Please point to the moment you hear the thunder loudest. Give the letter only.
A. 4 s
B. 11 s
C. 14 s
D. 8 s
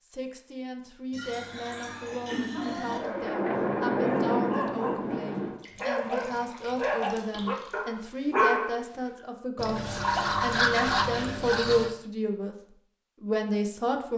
A.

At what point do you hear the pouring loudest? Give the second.
11 s.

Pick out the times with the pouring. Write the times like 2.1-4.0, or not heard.
1.1-3.0, 5.5-7.8, 9.6-11.9.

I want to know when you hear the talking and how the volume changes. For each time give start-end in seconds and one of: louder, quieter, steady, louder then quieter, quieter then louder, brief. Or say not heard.
0.0-12.6 louder
13.2-14.1 brief.